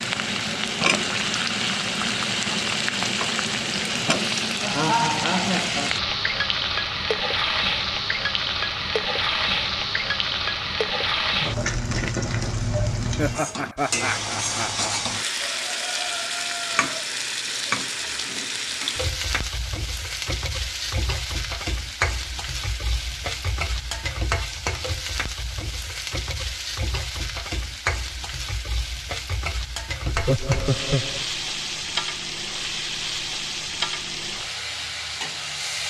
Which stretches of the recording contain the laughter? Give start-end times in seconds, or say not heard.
4.6-5.9, 13.2-15.0, 30.1-31.2.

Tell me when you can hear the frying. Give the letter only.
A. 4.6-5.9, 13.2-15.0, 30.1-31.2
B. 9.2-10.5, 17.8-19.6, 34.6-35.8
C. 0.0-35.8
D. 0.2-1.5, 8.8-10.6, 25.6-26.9
C.